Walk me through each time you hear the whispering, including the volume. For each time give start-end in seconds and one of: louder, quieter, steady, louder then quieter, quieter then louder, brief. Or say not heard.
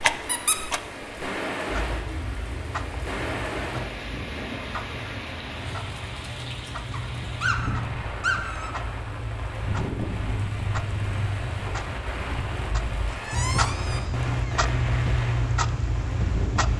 not heard.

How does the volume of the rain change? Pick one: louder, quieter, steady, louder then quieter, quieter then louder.
steady.